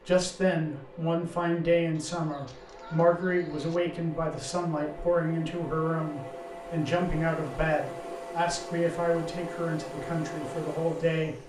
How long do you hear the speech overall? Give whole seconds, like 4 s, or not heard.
11 s.